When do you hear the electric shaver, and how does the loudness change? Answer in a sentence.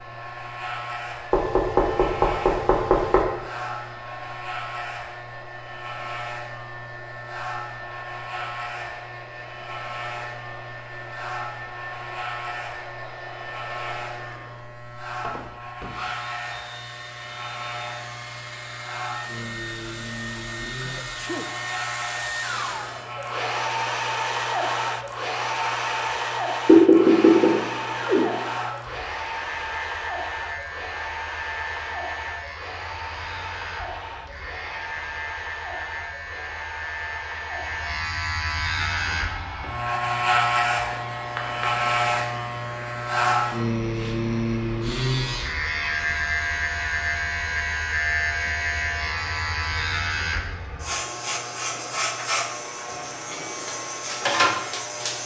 You can hear the electric shaver from 0.0 to 55.2 s, getting louder.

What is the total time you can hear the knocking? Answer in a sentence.
The knocking can be heard for 4 seconds in total.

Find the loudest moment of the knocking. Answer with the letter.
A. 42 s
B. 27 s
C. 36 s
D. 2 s
B.